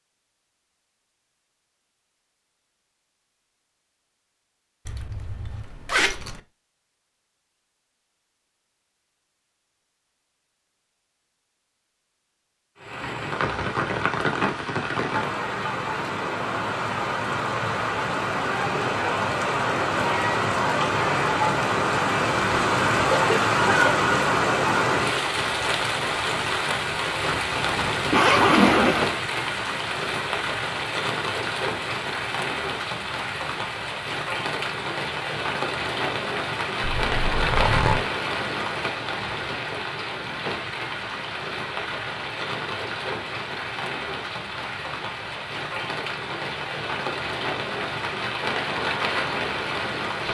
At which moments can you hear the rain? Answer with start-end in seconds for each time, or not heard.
12.8-50.2.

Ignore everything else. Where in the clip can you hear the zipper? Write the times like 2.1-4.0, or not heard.
4.8-6.4, 27.4-29.1, 36.8-38.0.